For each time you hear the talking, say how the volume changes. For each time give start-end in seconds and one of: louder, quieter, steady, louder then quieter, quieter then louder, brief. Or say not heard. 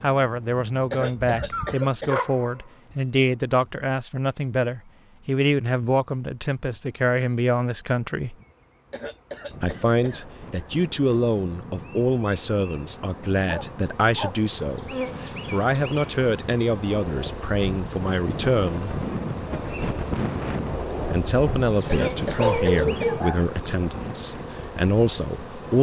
0.0-8.3 steady
9.6-19.0 steady
21.1-25.7 quieter then louder.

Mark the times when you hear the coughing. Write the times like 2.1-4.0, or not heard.
0.9-2.2, 8.9-10.2, 21.9-23.1.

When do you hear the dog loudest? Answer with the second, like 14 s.
23 s.